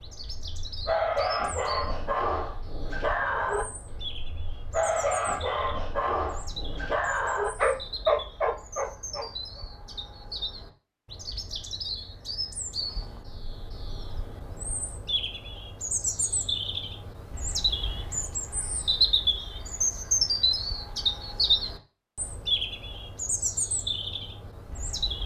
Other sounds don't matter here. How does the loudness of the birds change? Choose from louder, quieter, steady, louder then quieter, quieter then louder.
louder.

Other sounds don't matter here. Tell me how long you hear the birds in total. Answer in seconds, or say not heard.
25 s.